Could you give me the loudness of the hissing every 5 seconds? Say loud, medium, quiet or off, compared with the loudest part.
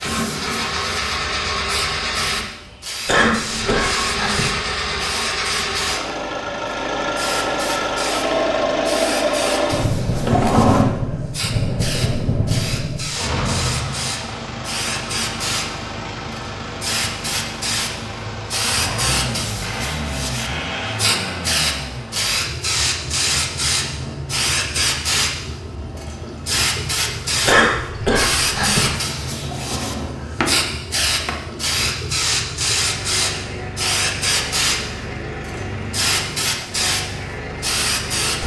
medium, medium, medium, loud, loud, loud, loud, loud.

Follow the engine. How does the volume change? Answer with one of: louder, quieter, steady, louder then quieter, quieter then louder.
quieter.